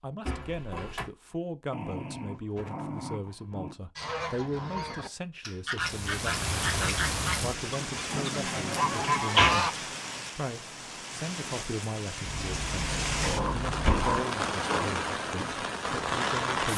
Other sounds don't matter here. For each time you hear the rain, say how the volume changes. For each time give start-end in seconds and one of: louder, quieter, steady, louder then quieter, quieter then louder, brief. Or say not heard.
5.8-16.7 quieter then louder.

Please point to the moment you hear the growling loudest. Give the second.
14 s.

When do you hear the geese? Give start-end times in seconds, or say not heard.
4.0-9.7.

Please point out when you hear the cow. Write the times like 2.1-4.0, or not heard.
not heard.